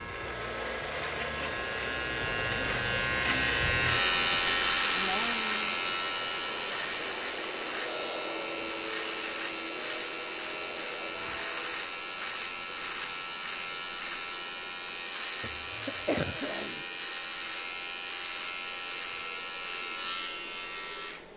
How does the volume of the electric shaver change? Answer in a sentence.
The volume of the electric shaver goes down.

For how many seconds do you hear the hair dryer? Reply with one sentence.
You can hear the hair dryer for 21 seconds altogether.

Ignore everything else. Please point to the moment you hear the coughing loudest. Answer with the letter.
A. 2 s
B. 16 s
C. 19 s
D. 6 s
B.